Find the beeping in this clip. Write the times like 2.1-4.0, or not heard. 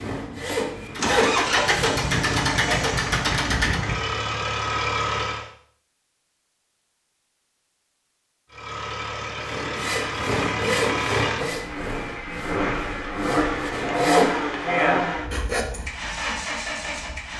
not heard.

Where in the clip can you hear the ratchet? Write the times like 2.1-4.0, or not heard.
0.9-3.8.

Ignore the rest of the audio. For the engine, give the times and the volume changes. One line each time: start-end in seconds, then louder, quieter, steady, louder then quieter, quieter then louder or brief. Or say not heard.
0.1-5.5 steady
8.5-17.3 louder then quieter.